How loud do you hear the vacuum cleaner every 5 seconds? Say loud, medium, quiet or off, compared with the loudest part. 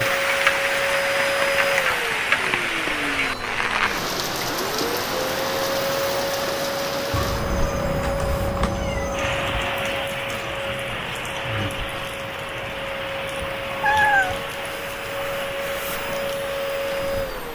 loud, loud, medium, loud.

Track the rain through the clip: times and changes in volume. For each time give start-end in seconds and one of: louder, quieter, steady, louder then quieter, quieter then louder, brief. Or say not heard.
0.0-17.5 quieter.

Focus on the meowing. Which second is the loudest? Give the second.
14 s.